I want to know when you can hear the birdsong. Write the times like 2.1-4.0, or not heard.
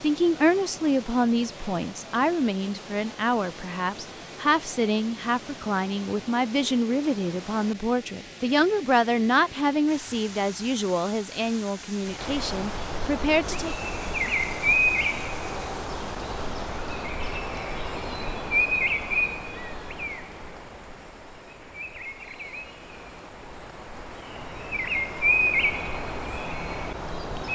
12.1-27.4.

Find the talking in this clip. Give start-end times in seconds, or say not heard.
0.0-13.8.